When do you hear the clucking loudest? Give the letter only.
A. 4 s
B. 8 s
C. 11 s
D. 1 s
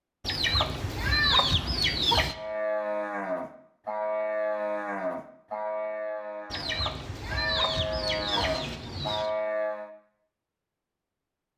D.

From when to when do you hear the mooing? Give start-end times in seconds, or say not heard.
2.3-9.9.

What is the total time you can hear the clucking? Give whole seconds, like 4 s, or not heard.
5 s.